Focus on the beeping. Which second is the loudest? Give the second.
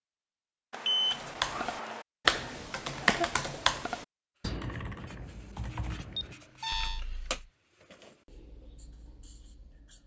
1 s.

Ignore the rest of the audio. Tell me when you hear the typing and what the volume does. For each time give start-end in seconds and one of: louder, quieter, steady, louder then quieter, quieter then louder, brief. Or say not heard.
1.1-7.5 quieter.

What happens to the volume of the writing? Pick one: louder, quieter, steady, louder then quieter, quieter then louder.
louder then quieter.